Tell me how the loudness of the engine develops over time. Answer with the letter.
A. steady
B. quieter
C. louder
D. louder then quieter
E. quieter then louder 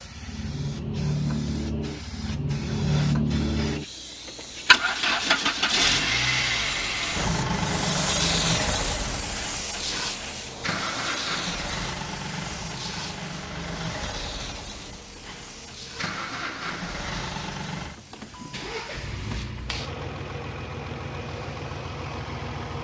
B.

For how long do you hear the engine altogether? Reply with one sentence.
You can hear the engine for 23 seconds altogether.